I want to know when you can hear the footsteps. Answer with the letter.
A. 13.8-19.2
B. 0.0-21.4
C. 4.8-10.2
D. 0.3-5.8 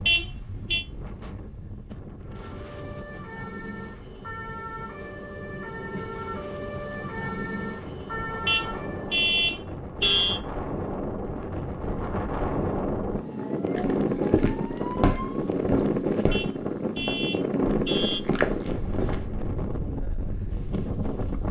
A.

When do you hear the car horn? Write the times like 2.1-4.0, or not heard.
0.1-0.8, 8.4-10.4, 16.3-18.2.